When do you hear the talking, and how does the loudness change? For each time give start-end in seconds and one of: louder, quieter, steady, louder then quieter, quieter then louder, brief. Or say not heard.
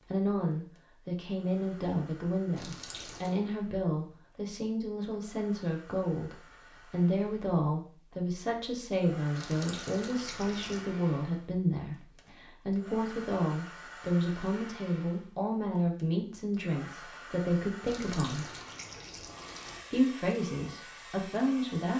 0.1-18.4 steady
19.9-21.9 brief.